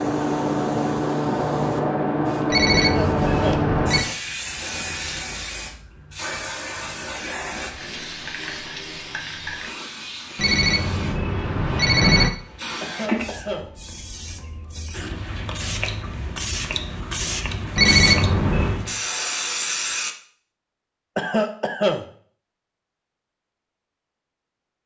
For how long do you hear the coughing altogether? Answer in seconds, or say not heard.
3 s.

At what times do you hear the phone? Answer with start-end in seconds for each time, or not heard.
2.5-4.0, 10.3-12.3, 17.8-18.8.